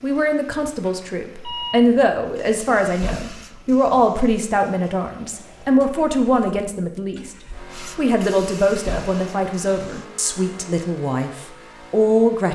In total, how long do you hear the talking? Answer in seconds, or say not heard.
12 s.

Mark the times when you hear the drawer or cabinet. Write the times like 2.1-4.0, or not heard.
not heard.